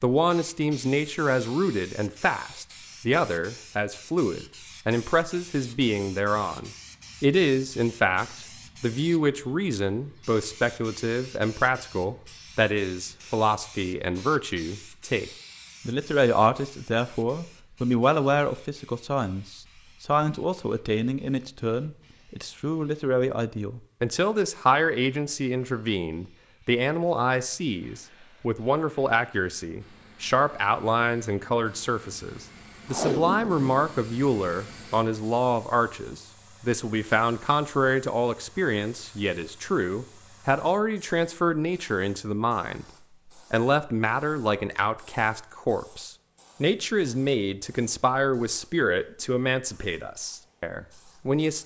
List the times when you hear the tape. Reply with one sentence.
You can hear the tape from 32.9 to 33.9 s.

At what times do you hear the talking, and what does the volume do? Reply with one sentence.
The talking can be heard from 0.0 to 42.9 s, at a steady volume; and from 43.5 to 51.6 s, getting quieter.